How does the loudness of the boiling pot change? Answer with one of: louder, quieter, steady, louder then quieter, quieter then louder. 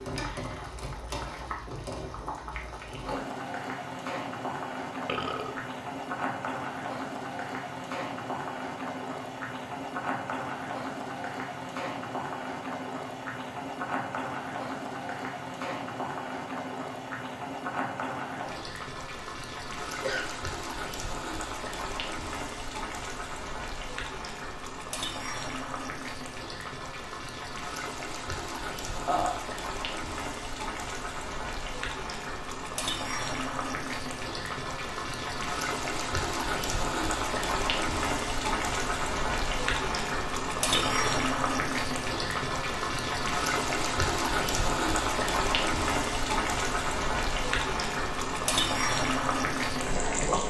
louder.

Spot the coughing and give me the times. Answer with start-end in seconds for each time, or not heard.
19.9-20.3.